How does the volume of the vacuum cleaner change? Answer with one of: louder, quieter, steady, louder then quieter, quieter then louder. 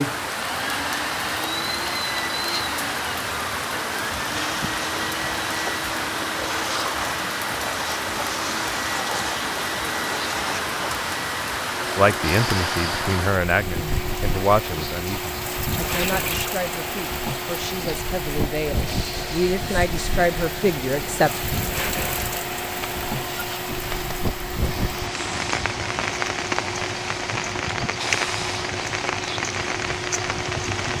steady.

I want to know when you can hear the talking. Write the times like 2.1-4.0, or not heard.
11.9-21.3.